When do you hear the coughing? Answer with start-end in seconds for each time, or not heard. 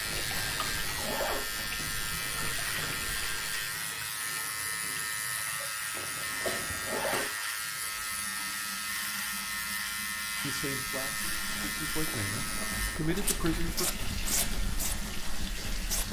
6.4-7.2.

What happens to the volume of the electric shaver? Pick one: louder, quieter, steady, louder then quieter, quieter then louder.
quieter.